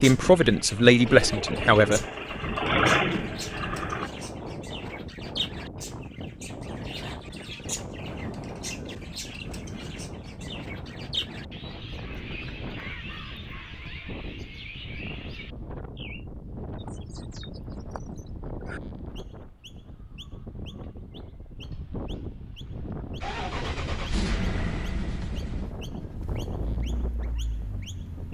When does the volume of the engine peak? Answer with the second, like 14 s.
3 s.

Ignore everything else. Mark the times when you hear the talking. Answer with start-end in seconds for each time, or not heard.
0.0-2.0.